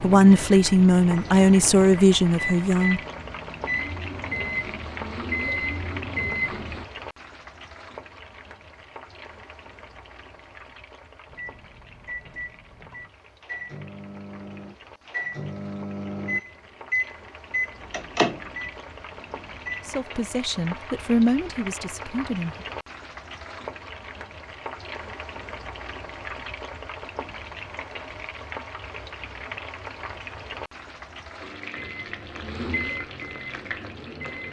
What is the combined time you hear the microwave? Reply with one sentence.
You can hear the microwave for 18 seconds altogether.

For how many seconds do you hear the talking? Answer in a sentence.
The talking can be heard for 6 seconds in total.